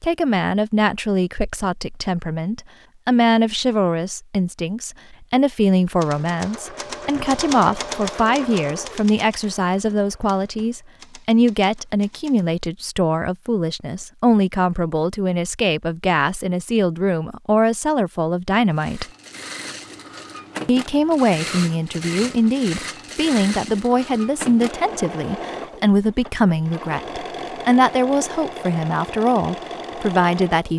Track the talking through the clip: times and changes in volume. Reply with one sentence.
You can hear the talking from 0.0 to 19.1 s, at a steady volume; and from 20.6 to 30.7 s, at a steady volume.